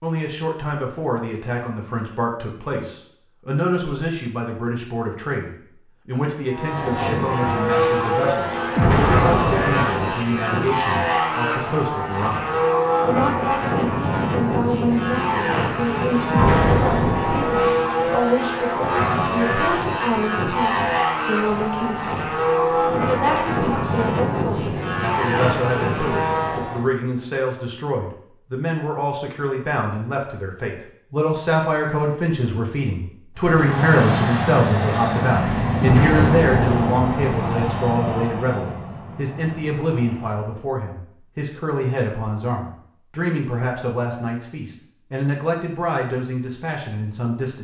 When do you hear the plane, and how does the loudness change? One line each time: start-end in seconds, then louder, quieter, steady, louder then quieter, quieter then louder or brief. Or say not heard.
6.5-26.9 steady
33.4-40.7 quieter.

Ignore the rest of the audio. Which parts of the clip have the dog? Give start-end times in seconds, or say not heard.
not heard.